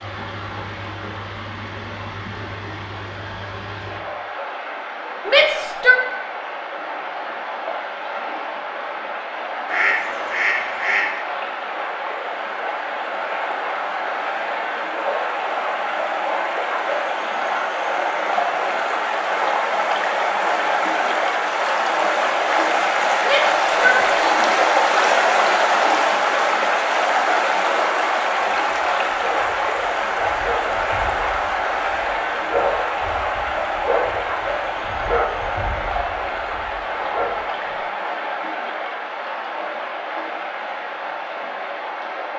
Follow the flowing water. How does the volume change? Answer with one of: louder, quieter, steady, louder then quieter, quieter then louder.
louder then quieter.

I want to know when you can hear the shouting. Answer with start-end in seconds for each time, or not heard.
5.2-6.0, 23.2-24.6.